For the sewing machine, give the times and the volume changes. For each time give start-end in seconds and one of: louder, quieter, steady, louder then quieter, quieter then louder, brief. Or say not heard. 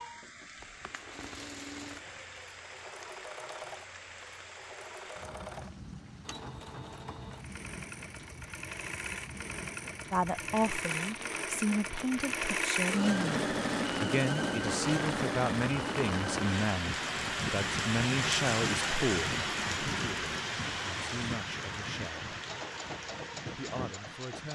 0.0-24.5 louder then quieter.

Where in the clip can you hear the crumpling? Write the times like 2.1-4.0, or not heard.
0.6-2.3.